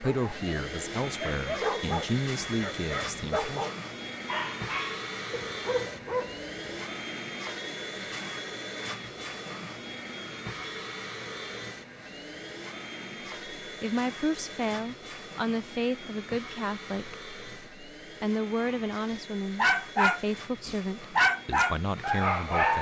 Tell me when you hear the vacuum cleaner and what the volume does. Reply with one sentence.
The vacuum cleaner can be heard from 0.0 to 22.7 s, getting quieter.